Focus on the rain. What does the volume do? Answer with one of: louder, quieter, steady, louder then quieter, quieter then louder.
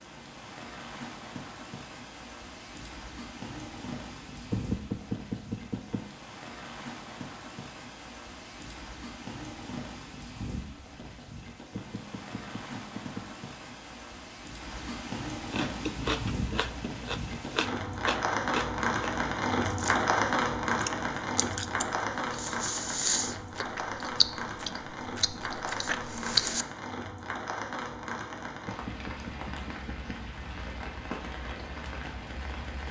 louder then quieter.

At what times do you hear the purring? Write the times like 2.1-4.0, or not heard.
not heard.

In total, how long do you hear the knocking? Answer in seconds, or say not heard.
5 s.